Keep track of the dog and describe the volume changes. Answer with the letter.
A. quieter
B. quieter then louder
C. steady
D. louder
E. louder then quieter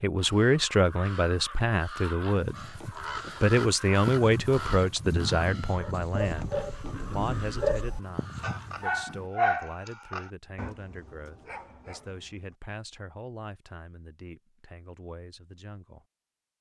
E.